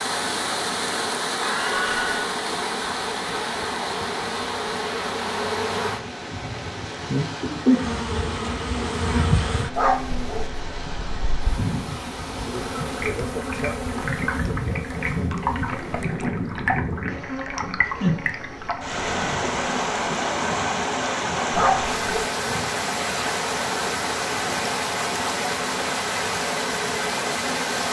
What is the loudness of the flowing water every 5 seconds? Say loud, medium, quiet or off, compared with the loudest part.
loud, medium, medium, loud, loud, loud.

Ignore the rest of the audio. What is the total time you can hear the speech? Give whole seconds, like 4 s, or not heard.
not heard.